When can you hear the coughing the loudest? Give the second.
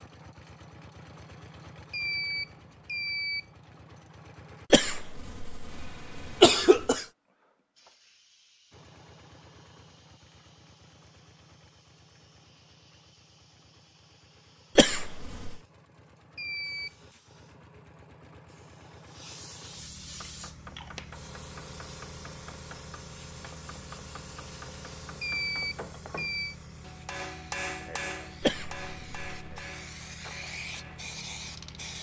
7 s.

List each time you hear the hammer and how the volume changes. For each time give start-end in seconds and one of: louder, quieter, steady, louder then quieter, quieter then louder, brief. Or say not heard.
20.2-31.2 louder then quieter.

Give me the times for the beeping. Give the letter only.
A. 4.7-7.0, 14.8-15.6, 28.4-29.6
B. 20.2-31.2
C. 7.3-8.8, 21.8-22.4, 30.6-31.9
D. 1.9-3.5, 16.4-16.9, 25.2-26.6
D.